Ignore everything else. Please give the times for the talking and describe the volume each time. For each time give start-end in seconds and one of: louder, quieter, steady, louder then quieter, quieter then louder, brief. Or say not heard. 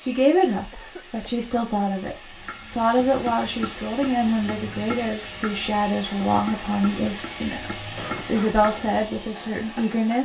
0.0-10.2 steady.